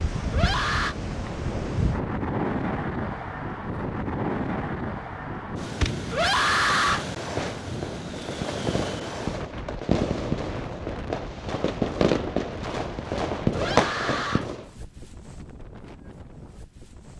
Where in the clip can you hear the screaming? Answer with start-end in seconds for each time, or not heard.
0.3-0.9, 6.1-7.0, 13.5-14.4.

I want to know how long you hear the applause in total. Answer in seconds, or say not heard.
not heard.